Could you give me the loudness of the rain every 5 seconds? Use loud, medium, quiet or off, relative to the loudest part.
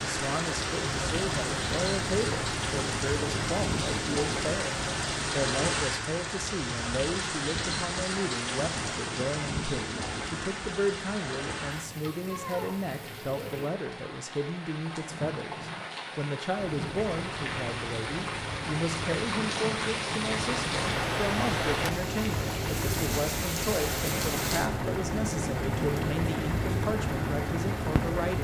loud, loud, medium, loud, loud, loud.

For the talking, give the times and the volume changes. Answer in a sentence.
You can hear the talking from 0.0 to 28.4 s, at a steady volume.